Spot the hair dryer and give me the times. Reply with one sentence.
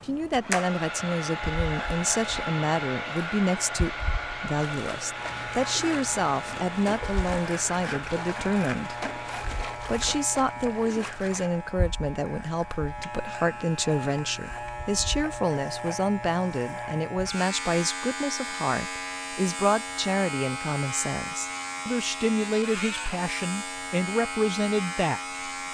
You can hear the hair dryer from 0.0 to 9.4 s.